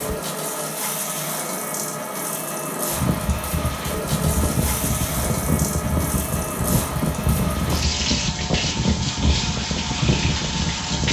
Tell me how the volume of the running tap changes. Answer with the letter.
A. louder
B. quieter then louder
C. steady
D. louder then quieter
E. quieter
C.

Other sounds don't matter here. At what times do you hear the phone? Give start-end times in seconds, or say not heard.
not heard.